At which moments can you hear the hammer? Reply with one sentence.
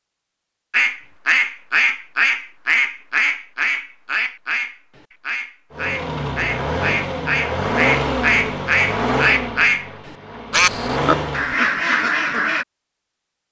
The hammer can't be heard in this clip.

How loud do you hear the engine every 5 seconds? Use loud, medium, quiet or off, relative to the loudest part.
off, loud, loud.